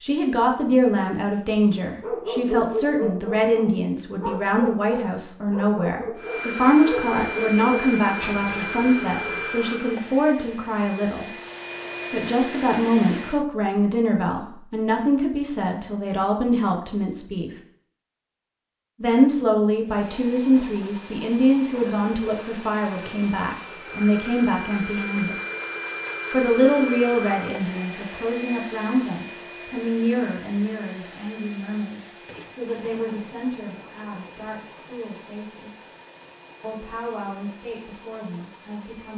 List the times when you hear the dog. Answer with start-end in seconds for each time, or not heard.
2.0-9.5.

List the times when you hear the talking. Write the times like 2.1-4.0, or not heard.
0.0-11.2, 12.1-17.5, 19.0-25.4, 26.3-35.8, 36.6-39.1.